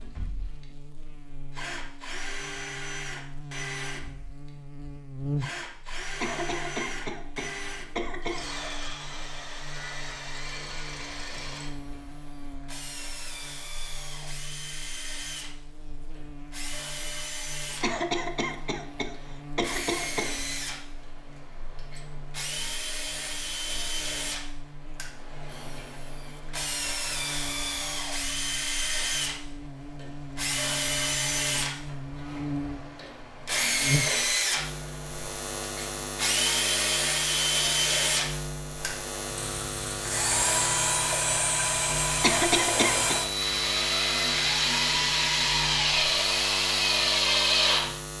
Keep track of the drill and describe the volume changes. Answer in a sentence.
The volume of the drill goes up.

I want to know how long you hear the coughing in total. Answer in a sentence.
You can hear the coughing for 6 seconds altogether.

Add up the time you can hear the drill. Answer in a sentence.
You can hear the drill for 48 seconds altogether.